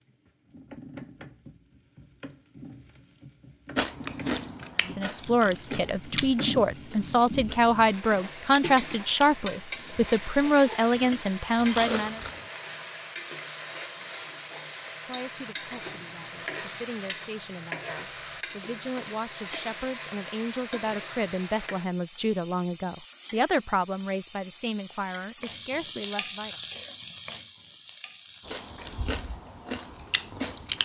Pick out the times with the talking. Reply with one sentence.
The talking can be heard from 4.8 to 12.2 s and from 15.1 to 26.6 s.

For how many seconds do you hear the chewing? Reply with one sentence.
You can hear the chewing for 11 seconds altogether.